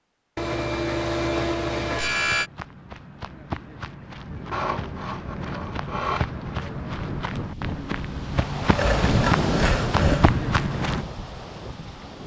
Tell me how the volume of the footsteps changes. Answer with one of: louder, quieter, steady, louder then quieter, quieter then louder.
louder.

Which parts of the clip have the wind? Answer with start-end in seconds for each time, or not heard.
4.2-12.2.